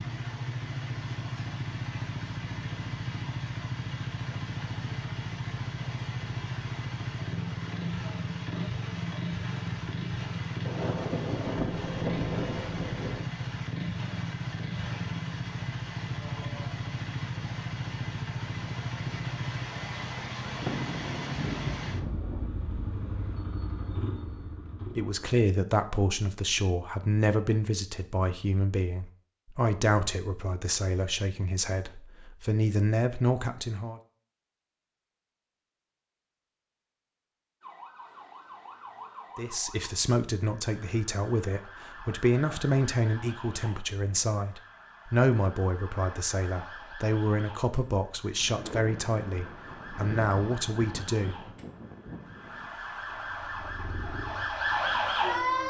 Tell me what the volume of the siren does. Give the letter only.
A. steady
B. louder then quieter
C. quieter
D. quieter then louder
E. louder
E.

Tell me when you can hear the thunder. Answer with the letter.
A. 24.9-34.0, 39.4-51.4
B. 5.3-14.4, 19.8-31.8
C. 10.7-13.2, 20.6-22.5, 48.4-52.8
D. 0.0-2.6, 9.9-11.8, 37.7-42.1
C.